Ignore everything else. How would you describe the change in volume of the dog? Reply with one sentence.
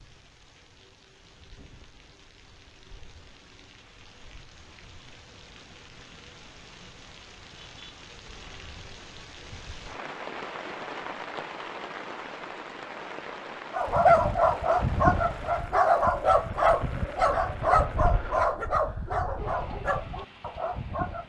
The loudness of the dog goes down.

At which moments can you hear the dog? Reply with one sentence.
The dog can be heard from 13.7 to 21.2 s.